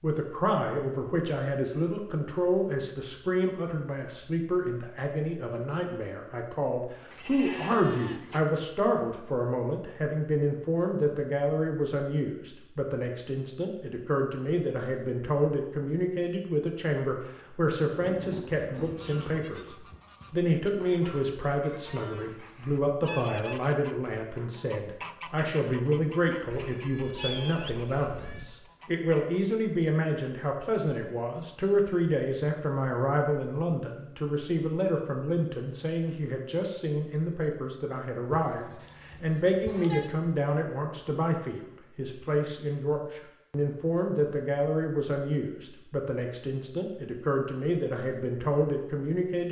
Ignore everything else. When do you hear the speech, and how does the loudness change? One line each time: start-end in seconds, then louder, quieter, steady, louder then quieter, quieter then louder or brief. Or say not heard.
0.0-49.4 steady.